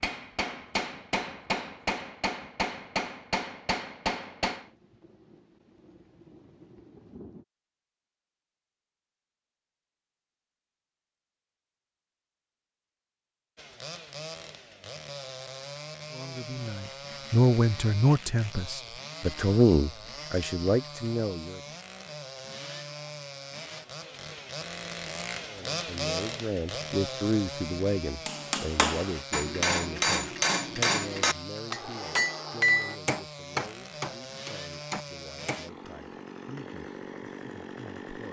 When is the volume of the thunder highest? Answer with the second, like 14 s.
7 s.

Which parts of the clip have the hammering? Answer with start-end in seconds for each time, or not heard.
0.0-4.7, 28.2-35.6.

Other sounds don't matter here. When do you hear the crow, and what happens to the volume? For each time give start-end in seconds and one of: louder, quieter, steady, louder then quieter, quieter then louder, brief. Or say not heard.
not heard.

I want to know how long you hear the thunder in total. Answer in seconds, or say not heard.
3 s.